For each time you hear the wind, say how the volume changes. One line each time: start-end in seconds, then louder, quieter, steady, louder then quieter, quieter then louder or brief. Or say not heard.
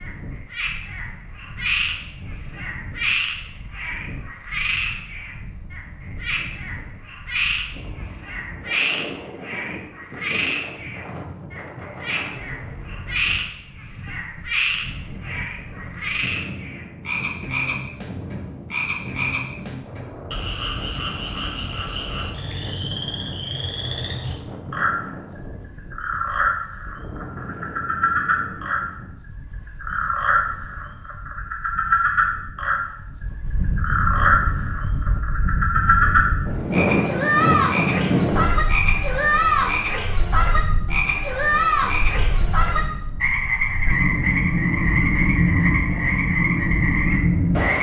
0.0-47.7 louder.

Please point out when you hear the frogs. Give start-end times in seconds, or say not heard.
0.0-28.9, 29.6-32.9, 33.6-47.7.